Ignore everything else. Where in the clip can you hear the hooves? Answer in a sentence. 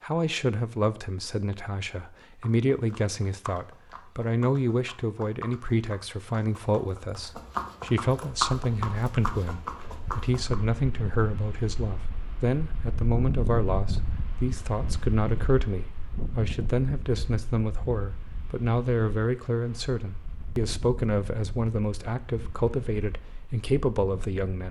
You can hear the hooves from 2.4 to 10.6 s.